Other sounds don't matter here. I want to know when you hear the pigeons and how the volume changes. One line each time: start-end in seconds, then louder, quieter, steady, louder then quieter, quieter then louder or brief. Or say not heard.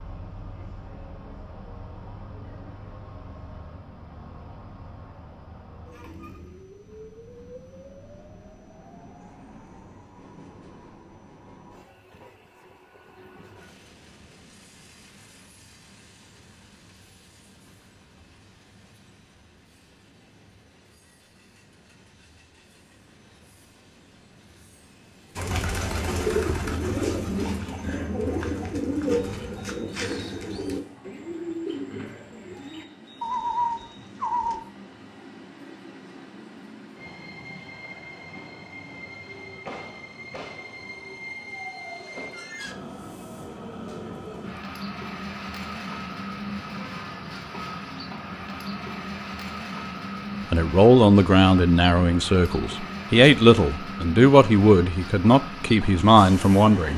25.4-34.6 quieter then louder.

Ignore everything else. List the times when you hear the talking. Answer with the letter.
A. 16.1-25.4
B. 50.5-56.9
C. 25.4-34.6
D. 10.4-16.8
B.